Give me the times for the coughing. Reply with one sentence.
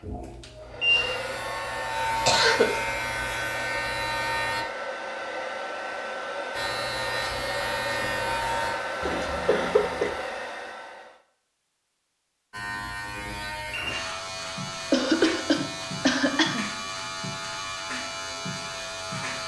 You can hear the coughing from 2.2 to 2.8 s, from 9.0 to 10.1 s and from 14.9 to 16.6 s.